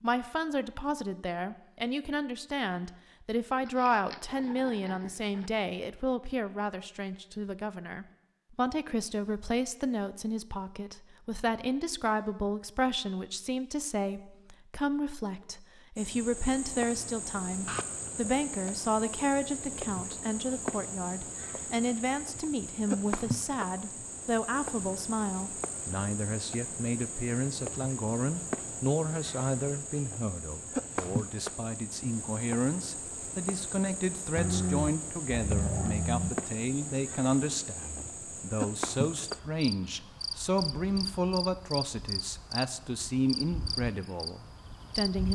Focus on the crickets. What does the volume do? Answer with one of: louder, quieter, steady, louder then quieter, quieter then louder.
steady.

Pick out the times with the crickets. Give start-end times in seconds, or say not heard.
15.9-45.3.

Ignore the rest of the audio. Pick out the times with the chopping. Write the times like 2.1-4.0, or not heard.
not heard.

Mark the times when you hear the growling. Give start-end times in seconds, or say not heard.
3.6-5.5, 17.6-18.4, 34.4-36.3.